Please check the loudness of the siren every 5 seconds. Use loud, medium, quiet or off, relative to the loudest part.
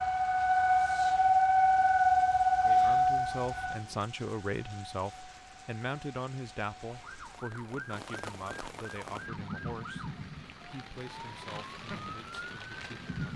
loud, quiet, quiet.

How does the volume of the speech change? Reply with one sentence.
The volume of the speech goes down.